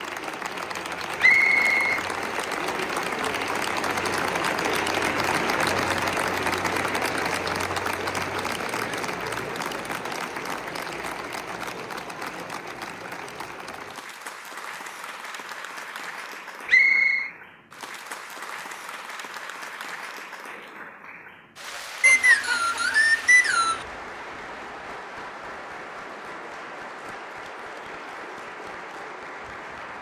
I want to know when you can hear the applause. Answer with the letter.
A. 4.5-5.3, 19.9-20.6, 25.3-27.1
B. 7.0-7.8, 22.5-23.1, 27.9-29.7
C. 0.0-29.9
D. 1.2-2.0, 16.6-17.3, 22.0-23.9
C.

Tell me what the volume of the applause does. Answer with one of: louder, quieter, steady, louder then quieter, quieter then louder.
quieter.